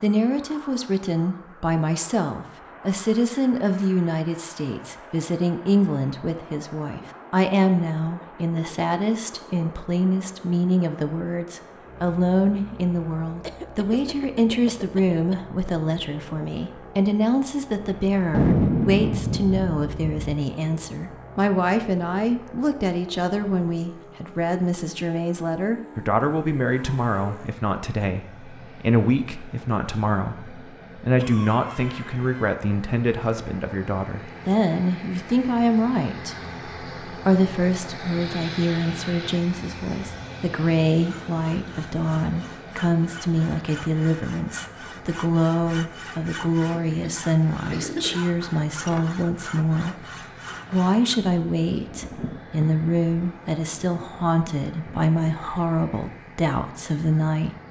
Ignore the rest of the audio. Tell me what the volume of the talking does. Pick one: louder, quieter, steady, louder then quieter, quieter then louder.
steady.